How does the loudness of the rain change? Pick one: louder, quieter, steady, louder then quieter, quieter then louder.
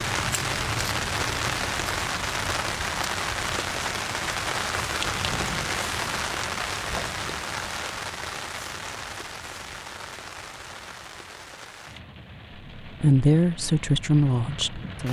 quieter.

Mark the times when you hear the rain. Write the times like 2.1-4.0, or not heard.
0.0-15.0.